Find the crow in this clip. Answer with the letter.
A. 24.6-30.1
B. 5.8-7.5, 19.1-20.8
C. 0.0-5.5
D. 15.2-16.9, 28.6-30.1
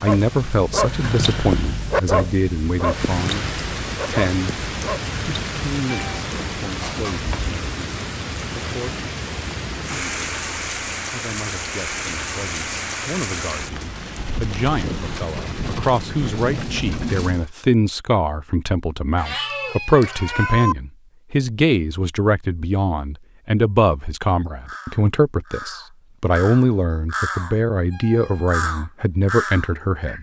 A.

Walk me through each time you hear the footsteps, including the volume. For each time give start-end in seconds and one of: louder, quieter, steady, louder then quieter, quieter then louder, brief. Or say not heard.
not heard.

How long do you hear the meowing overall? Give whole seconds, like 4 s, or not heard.
3 s.